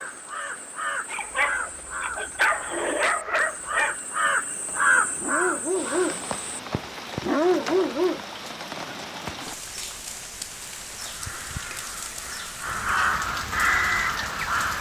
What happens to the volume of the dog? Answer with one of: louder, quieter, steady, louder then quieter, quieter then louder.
quieter then louder.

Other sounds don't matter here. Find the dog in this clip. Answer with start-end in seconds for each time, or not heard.
1.1-8.2.